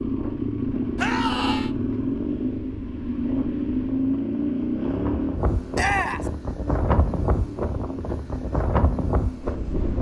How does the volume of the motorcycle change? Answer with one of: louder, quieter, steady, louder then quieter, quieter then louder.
quieter.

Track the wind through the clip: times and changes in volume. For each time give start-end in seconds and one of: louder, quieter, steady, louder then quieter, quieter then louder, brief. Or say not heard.
0.0-9.9 louder.